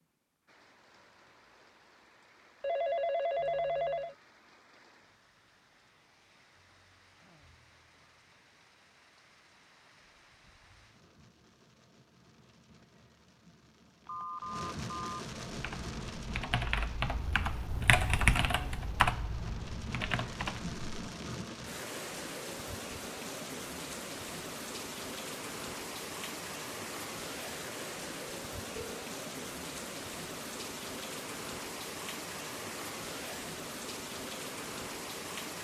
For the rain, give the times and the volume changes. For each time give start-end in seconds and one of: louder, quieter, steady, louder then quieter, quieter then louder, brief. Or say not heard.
0.0-35.5 louder.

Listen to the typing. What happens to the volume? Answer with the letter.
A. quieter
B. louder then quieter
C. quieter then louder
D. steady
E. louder
B.